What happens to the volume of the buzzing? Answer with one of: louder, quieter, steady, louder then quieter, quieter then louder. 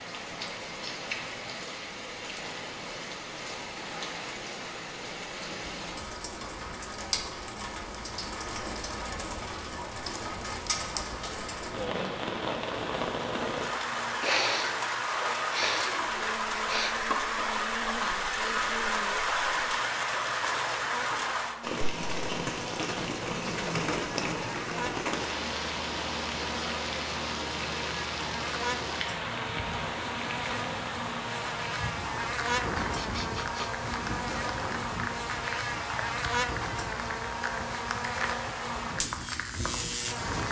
louder.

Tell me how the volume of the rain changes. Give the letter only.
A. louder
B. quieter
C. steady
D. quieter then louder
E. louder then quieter
E.